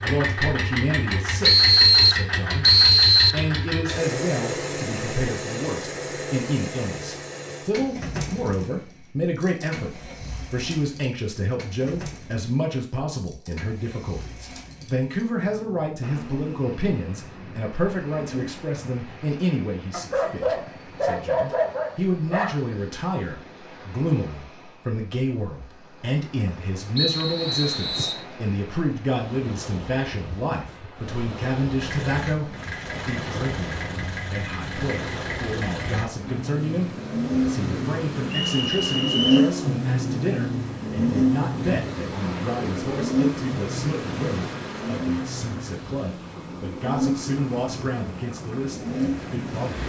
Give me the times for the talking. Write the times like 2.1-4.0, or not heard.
0.0-49.8.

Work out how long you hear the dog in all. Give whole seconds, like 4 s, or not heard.
3 s.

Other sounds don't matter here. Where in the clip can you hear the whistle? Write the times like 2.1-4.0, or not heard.
1.4-3.5, 26.9-28.2, 38.3-39.5.